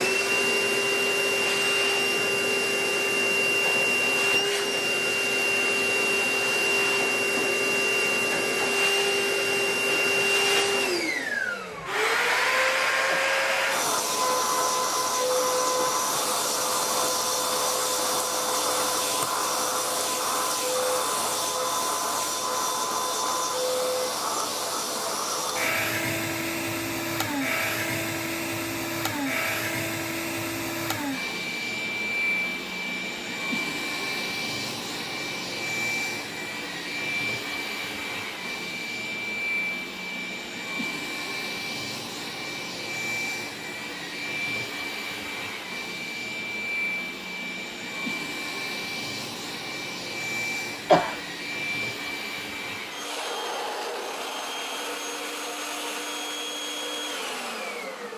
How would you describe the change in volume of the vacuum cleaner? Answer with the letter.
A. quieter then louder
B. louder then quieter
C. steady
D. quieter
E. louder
D.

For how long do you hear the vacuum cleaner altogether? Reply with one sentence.
The vacuum cleaner can be heard for 58 seconds in total.